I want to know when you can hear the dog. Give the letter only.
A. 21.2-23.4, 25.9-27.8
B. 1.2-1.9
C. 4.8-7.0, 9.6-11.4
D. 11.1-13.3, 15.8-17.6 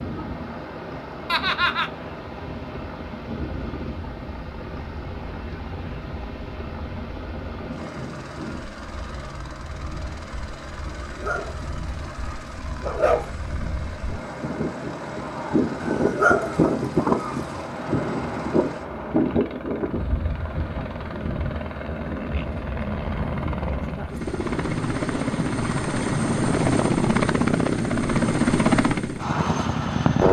D.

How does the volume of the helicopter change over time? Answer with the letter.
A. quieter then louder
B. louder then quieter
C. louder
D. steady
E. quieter
C.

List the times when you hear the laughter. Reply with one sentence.
You can hear the laughter from 1.2 to 1.9 s.